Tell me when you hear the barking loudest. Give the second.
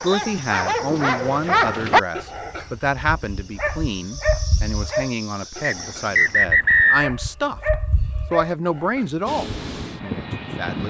2 s.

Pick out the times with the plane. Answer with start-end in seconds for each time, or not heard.
9.2-10.8.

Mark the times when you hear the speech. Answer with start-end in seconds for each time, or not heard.
0.0-10.8.